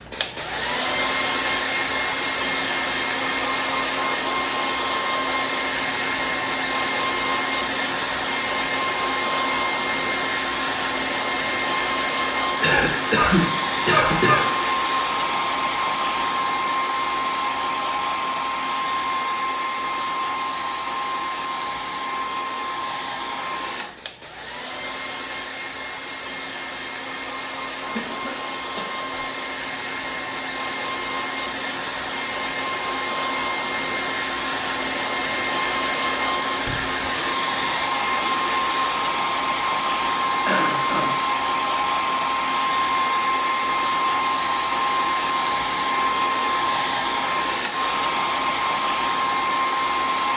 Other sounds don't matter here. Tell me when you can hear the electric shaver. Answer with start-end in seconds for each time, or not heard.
not heard.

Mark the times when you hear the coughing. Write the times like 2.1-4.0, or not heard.
12.6-14.4, 27.8-29.2, 40.4-41.1.